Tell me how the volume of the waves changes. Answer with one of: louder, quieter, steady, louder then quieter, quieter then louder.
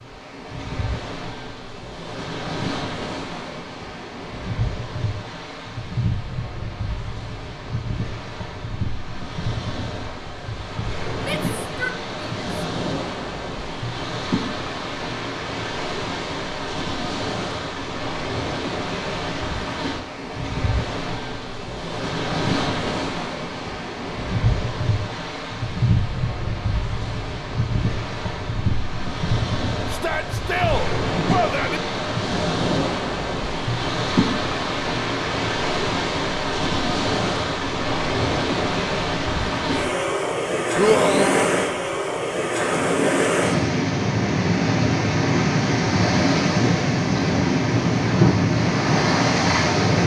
louder.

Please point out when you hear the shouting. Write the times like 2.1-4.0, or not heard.
11.2-12.4, 29.9-31.8, 40.8-41.5.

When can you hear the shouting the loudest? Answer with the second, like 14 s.
41 s.